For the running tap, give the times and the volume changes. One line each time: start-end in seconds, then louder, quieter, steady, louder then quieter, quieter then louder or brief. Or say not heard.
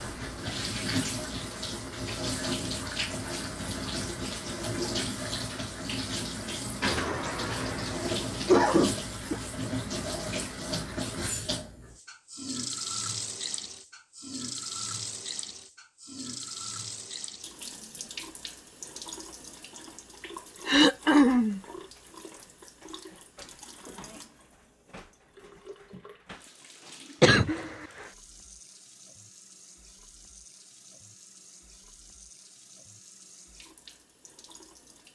0.0-35.1 quieter.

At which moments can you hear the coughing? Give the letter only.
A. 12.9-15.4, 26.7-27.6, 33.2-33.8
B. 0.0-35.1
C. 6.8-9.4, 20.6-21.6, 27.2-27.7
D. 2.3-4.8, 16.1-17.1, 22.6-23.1
C.